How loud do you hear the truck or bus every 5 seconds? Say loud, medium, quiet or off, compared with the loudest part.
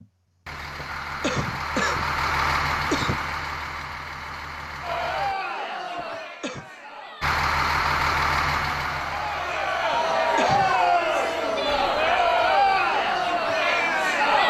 loud, loud, quiet.